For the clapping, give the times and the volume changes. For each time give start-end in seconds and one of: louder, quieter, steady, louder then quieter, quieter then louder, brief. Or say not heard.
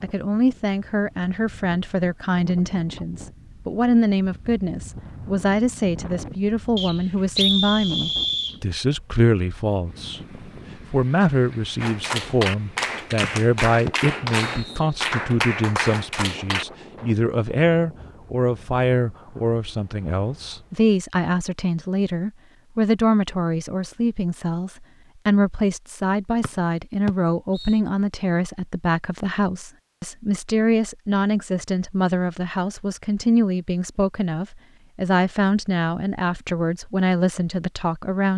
11.8-16.6 steady.